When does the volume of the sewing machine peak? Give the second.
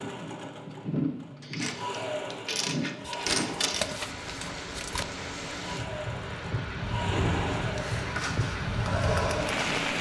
9 s.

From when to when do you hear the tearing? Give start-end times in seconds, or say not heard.
3.0-5.0.